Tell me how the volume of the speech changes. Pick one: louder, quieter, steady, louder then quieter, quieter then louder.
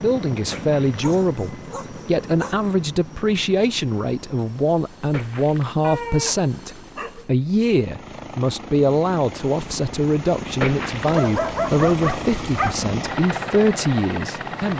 steady.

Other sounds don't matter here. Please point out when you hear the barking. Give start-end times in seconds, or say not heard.
0.8-2.6, 5.8-7.4, 11.1-12.8.